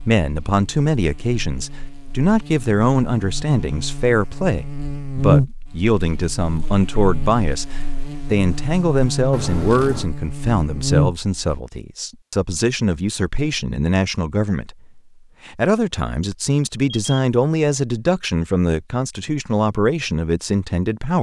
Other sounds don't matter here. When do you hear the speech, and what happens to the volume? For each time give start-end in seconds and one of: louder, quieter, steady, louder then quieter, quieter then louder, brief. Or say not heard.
0.1-21.1 steady.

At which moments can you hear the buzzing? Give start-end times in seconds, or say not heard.
0.0-11.6.